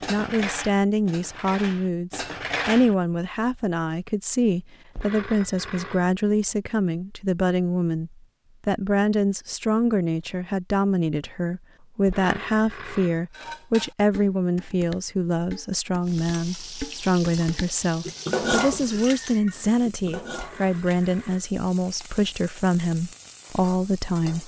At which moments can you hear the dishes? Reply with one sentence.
You can hear the dishes from 0.0 to 3.0 s and from 13.3 to 21.1 s.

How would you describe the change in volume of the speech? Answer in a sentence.
The volume of the speech stays about the same.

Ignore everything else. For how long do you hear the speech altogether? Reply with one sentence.
The speech can be heard for 24 seconds in total.